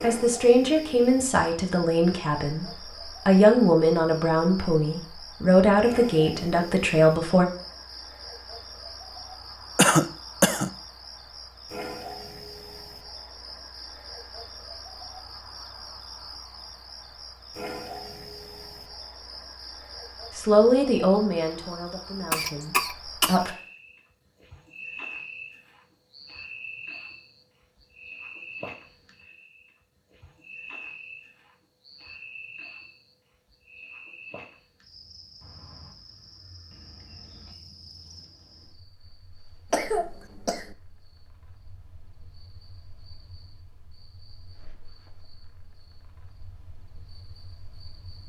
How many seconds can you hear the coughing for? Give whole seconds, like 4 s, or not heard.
3 s.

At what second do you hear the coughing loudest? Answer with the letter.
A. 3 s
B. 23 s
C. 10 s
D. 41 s
C.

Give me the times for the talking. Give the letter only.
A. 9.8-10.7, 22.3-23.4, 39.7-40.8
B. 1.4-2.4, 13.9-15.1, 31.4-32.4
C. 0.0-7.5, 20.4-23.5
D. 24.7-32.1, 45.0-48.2
C.